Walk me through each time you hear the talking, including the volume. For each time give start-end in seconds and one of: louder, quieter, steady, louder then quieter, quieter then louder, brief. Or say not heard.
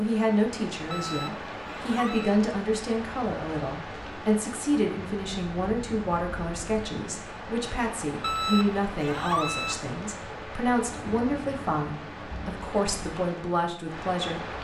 0.0-14.5 steady.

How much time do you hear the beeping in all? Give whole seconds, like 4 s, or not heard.
3 s.